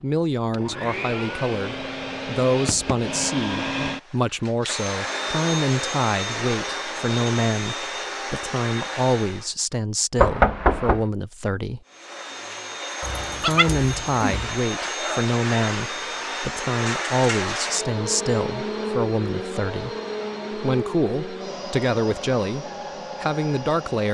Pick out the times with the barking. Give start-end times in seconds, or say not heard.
13.0-14.5.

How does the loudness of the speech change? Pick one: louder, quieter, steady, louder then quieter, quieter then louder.
steady.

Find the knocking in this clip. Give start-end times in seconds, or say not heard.
10.2-11.1.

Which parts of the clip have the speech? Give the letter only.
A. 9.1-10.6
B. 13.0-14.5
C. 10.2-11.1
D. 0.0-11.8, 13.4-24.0
D.